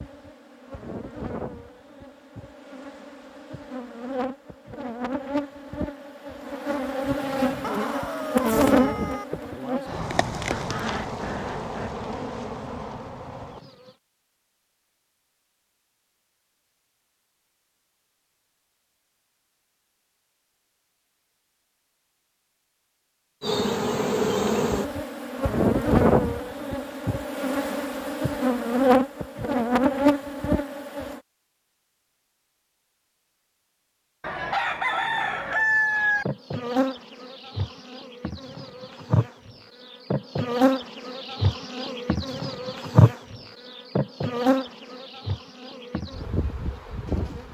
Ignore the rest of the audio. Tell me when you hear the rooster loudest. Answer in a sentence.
The volume of the rooster peaks at 36 seconds.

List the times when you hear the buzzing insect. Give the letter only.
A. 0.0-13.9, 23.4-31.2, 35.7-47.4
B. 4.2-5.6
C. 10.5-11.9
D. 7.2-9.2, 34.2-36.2
A.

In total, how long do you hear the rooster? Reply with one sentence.
You can hear the rooster for 4 seconds altogether.